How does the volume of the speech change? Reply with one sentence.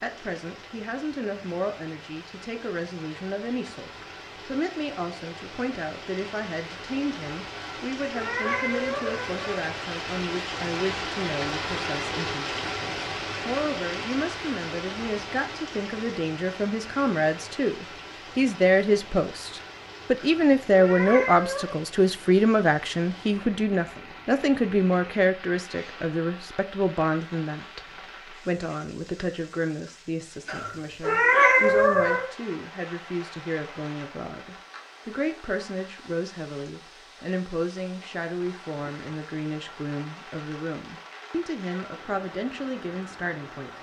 The volume of the speech goes up, then down.